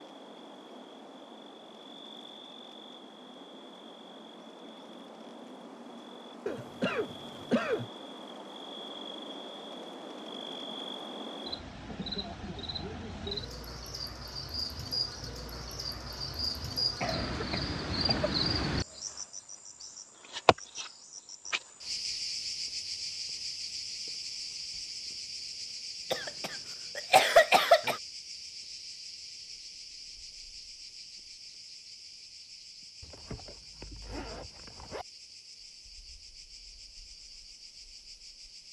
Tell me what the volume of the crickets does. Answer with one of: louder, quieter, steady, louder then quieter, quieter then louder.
louder then quieter.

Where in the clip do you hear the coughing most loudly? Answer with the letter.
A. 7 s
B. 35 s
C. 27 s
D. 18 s
C.